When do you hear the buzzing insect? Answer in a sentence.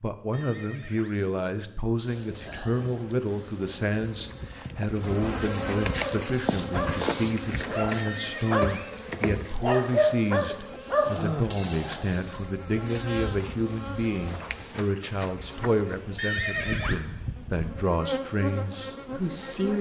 You can hear the buzzing insect from 2.0 to 19.7 s.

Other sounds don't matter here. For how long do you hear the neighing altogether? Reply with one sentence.
You can hear the neighing for 3 seconds altogether.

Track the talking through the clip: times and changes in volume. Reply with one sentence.
You can hear the talking from 0.0 to 19.7 s, at a steady volume.